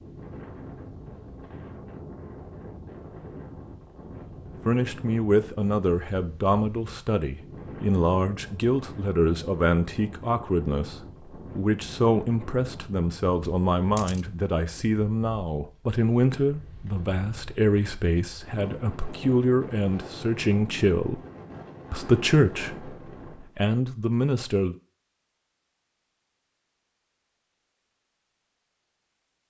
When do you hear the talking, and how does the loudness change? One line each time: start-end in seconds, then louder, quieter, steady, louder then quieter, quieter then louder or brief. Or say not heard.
4.7-21.2 steady
21.9-24.8 brief.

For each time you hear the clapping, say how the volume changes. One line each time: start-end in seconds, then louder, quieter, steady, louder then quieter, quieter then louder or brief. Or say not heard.
not heard.